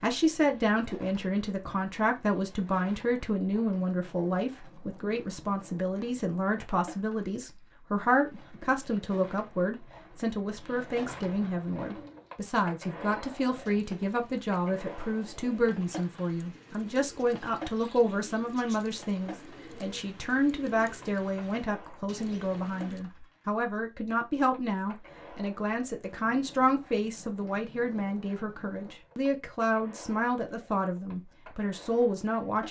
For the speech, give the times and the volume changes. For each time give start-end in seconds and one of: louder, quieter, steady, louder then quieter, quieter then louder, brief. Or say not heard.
0.0-32.6 steady.